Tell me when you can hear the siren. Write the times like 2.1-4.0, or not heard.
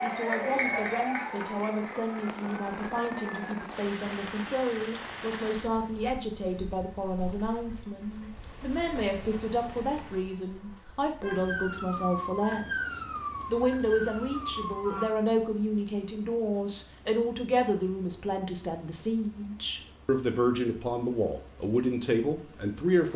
0.0-3.5, 11.2-15.1.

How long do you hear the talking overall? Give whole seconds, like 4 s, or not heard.
23 s.